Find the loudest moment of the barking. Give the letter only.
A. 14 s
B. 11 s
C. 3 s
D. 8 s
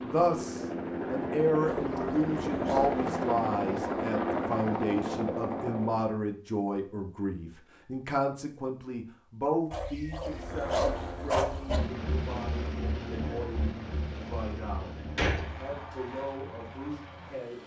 B.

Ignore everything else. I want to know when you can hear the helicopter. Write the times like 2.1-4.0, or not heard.
0.0-6.0, 10.2-17.6.